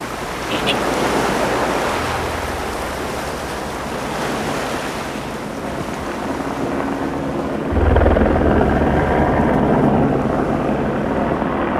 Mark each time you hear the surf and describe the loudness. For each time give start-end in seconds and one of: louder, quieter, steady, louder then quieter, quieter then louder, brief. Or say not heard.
0.0-11.7 quieter.